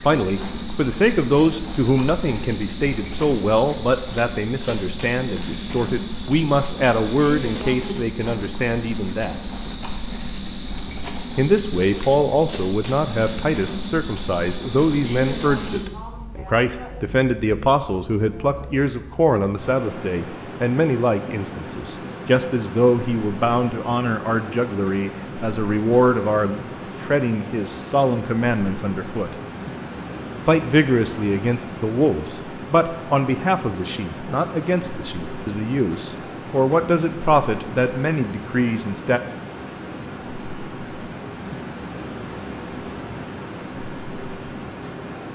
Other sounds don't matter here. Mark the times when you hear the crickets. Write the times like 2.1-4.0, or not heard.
0.0-45.3.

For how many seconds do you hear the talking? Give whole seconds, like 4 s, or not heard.
36 s.